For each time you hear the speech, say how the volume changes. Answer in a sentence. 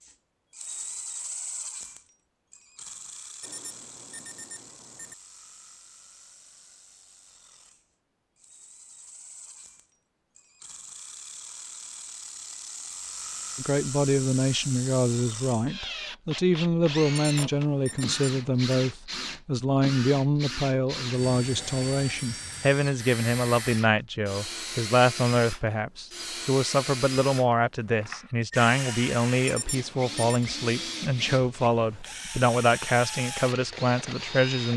You can hear the speech from 13.6 to 34.7 s, at a steady volume.